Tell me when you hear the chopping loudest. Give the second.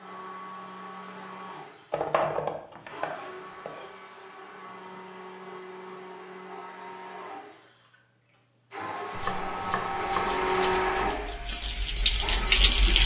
2 s.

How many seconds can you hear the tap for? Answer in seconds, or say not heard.
3 s.